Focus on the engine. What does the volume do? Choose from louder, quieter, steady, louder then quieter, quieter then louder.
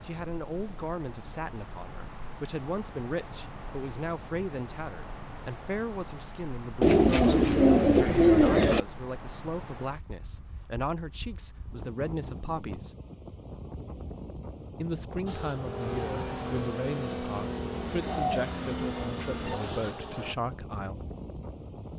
steady.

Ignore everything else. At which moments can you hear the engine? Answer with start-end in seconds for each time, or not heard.
15.2-20.4.